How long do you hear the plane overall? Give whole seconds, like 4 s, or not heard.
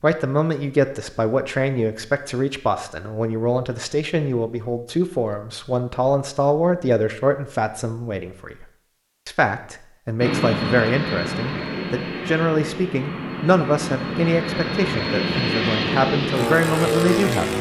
7 s.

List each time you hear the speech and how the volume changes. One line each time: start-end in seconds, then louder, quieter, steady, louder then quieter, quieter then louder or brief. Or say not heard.
0.0-8.7 steady
9.2-17.5 steady.